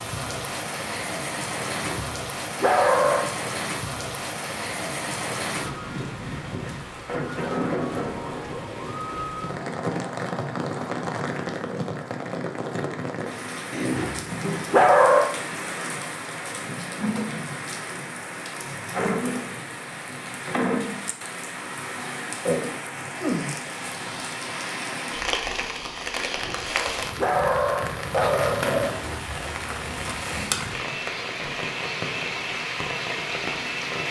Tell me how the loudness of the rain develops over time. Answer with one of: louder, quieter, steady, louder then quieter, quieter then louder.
steady.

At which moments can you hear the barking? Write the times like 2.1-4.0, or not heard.
1.8-3.3, 13.7-15.3, 26.1-29.0.